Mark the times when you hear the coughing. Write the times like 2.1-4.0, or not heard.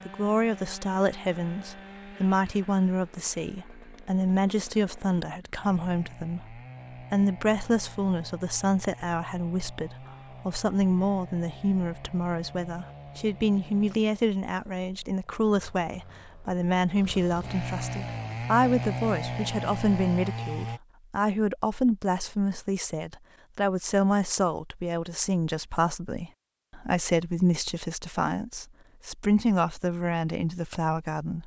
not heard.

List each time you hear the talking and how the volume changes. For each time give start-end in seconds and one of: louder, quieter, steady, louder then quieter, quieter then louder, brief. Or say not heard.
0.1-31.4 steady.